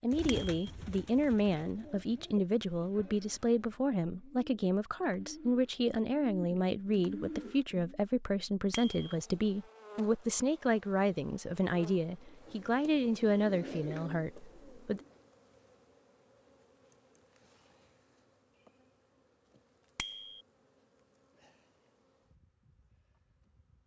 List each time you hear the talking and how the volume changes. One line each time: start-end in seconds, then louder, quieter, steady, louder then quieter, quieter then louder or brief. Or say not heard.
0.0-15.0 steady.